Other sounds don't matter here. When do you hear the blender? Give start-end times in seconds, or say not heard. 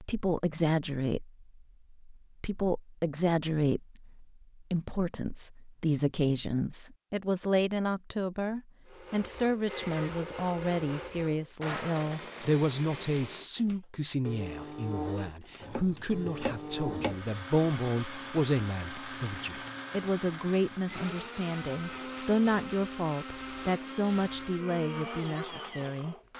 8.8-26.3.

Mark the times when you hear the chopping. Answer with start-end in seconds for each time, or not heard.
15.6-17.3.